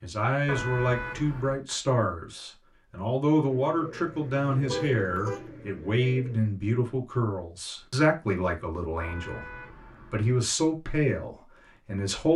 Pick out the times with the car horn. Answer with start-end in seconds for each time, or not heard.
0.5-1.6, 4.5-5.5, 9.0-10.3.